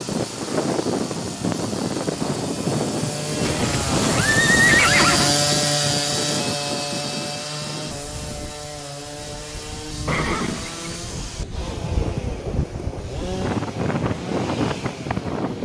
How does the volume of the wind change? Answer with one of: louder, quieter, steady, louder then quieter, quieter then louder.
quieter then louder.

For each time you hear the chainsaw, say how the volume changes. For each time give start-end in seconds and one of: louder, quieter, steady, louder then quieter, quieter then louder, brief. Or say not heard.
0.0-15.6 louder then quieter.